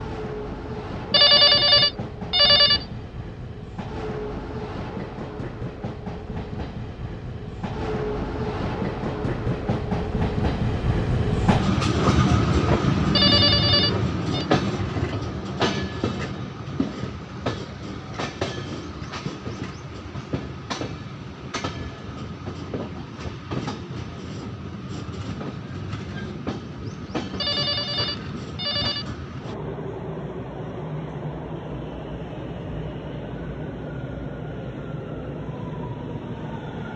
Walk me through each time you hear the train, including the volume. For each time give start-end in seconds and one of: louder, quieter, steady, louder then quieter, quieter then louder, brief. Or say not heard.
0.0-36.9 louder then quieter.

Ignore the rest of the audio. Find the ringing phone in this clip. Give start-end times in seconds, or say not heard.
1.1-2.9, 13.2-14.4, 27.4-29.1.